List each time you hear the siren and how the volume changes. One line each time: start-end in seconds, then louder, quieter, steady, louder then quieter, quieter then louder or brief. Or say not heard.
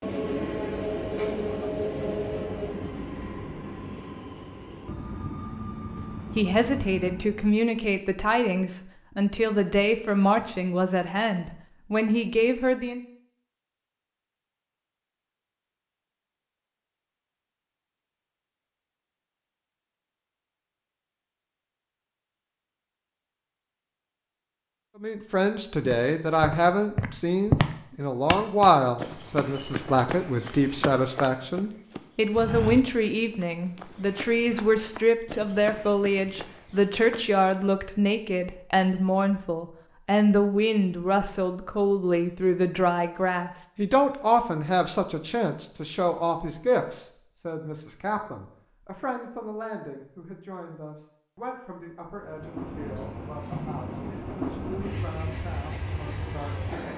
not heard.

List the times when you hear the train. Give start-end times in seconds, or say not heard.
0.0-7.5, 52.1-56.9.